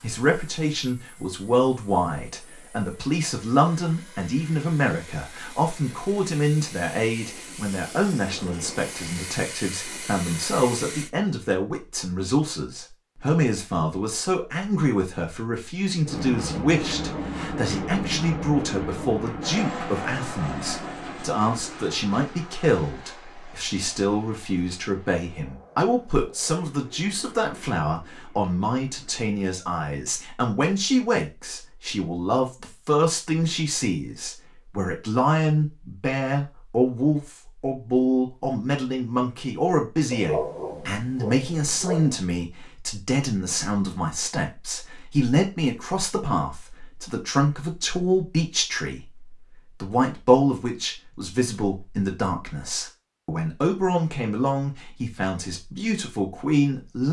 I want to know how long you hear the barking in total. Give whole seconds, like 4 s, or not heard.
2 s.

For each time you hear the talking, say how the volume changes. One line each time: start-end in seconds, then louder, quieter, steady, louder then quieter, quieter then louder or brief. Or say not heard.
0.0-57.0 steady.